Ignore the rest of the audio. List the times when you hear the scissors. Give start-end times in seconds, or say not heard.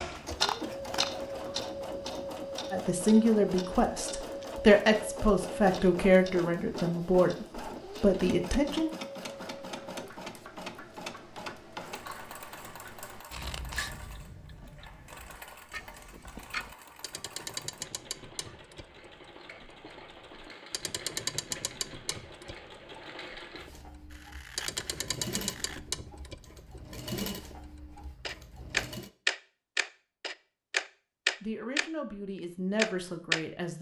0.1-1.7, 13.3-13.9, 24.1-25.8.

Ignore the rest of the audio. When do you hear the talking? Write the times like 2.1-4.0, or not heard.
2.7-8.9, 31.4-33.7.